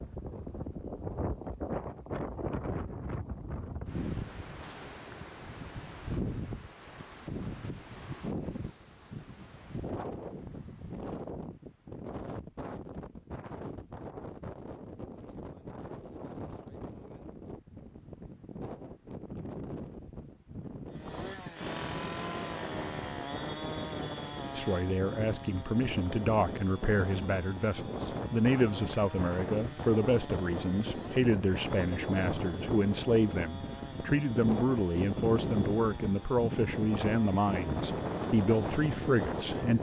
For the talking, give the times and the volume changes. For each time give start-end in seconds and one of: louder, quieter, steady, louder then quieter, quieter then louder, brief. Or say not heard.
24.6-39.7 steady.